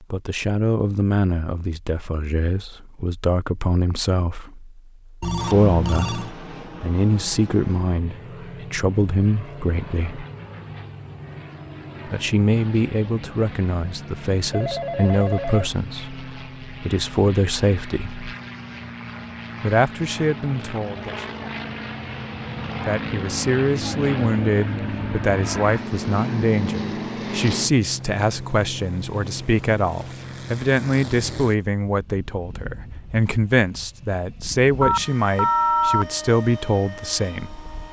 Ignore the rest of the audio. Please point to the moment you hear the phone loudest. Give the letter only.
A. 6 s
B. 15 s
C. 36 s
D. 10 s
C.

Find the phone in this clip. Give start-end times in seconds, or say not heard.
5.2-6.3, 14.5-15.7, 34.8-36.0.